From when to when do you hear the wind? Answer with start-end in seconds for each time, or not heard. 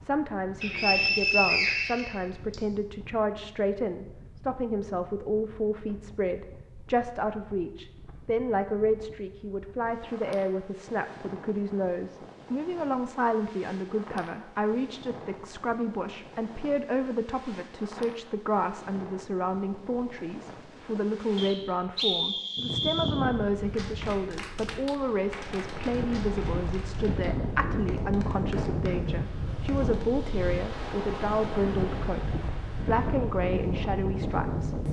0.0-34.8.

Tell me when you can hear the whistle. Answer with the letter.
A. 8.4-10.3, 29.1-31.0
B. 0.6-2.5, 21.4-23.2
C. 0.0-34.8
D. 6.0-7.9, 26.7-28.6
B.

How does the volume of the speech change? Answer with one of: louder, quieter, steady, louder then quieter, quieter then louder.
steady.